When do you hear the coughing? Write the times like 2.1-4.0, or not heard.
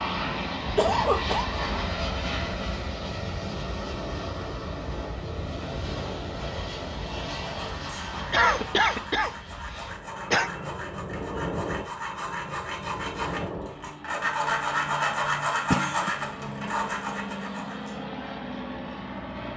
0.8-1.4, 8.3-10.5, 15.7-16.1.